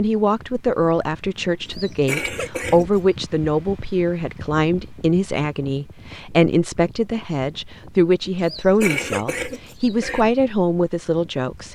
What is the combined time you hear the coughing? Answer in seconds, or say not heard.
3 s.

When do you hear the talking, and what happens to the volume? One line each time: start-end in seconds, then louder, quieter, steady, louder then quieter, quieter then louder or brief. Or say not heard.
0.0-11.7 steady.